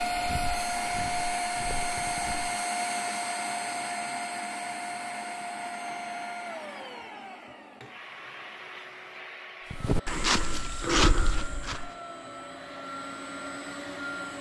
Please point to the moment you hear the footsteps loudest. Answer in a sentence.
The volume of the footsteps peaks at 11 seconds.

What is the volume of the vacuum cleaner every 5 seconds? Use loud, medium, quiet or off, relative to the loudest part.
loud, medium, medium.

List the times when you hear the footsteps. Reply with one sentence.
The footsteps can be heard from 0.1 to 2.5 s and from 9.7 to 11.9 s.